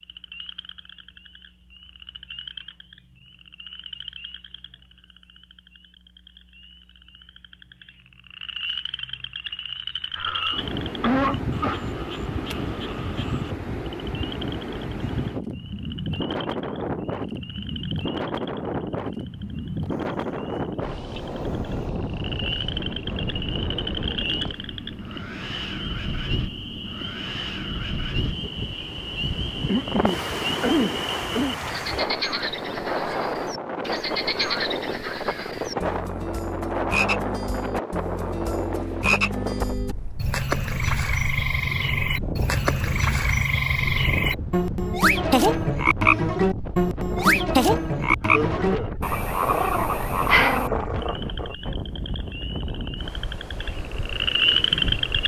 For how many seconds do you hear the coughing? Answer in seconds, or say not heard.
4 s.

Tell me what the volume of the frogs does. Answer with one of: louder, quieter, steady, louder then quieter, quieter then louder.
louder.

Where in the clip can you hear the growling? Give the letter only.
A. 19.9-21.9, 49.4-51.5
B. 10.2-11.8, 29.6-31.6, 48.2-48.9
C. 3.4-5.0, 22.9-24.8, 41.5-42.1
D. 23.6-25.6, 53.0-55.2
A.